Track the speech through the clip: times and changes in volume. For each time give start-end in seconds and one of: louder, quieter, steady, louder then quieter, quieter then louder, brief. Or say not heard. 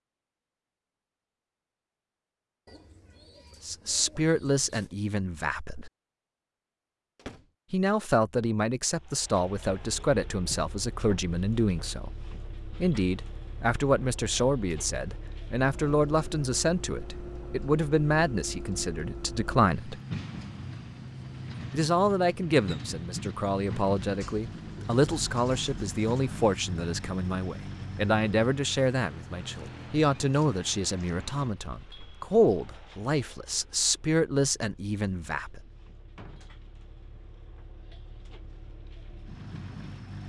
3.6-5.9 brief
7.7-20.0 steady
21.7-35.6 steady.